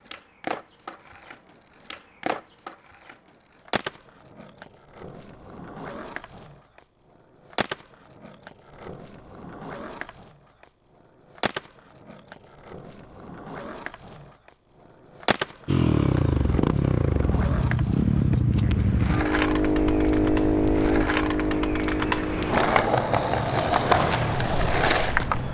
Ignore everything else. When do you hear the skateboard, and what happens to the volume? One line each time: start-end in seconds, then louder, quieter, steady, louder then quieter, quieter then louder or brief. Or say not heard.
0.1-25.4 louder.